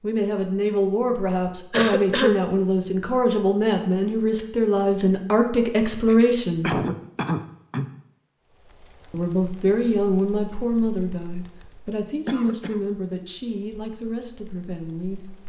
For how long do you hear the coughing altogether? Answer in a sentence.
The coughing can be heard for 3 seconds in total.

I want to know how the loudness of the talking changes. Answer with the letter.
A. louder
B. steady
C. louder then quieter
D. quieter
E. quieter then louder
D.